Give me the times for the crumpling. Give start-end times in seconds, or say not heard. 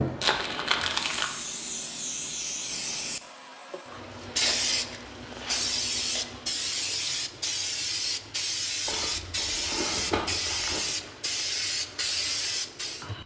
0.2-1.2, 4.4-6.5, 8.8-10.8.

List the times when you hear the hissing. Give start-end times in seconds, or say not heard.
0.0-13.2.